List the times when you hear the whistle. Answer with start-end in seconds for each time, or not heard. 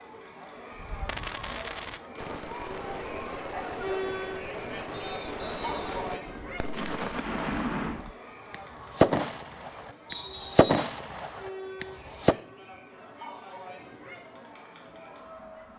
4.9-6.0, 10.1-10.9.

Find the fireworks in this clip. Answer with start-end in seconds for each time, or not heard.
0.8-12.3.